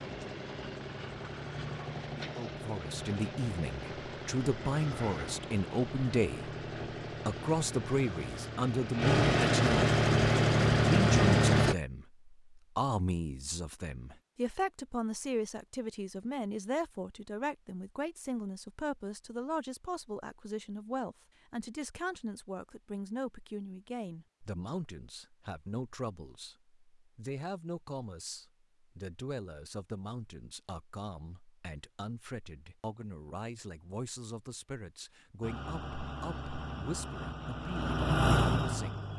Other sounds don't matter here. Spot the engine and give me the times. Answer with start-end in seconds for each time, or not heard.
0.0-11.8, 35.4-39.1.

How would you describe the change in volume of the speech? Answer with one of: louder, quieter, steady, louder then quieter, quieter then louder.
quieter.